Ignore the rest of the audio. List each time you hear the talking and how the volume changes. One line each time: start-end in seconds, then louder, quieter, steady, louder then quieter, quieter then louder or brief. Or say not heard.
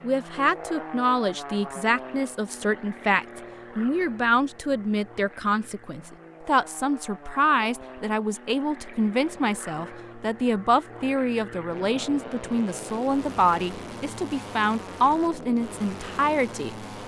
0.0-16.7 steady.